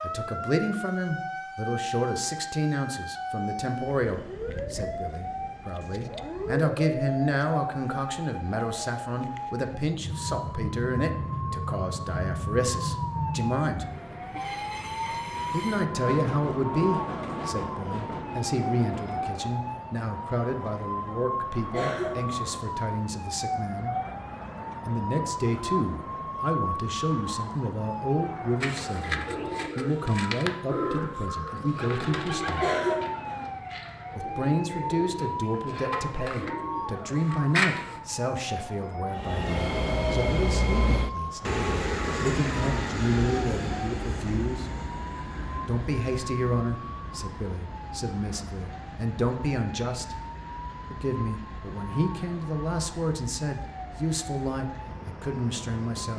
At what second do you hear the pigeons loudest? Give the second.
38 s.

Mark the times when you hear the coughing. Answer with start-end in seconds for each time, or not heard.
21.7-22.6, 32.5-33.5.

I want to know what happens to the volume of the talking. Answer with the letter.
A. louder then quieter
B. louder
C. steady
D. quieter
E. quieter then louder
C.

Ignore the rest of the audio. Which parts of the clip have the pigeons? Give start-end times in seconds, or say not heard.
28.6-38.0.